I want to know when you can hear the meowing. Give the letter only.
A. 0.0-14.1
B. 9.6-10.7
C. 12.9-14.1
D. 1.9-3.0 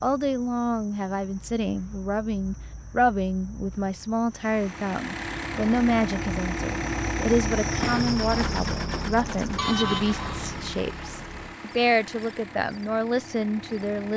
B.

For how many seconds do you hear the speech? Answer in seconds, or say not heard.
14 s.